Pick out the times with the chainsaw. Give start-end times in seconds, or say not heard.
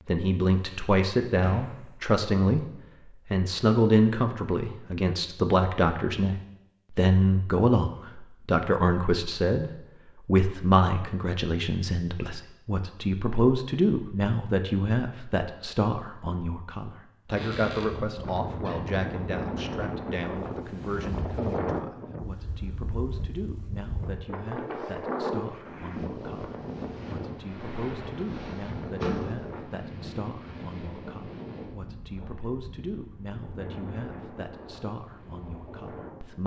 not heard.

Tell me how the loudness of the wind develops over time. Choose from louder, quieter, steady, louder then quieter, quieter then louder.
quieter.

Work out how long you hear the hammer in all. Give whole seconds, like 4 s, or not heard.
not heard.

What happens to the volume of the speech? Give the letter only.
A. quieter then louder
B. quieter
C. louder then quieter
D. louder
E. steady
B.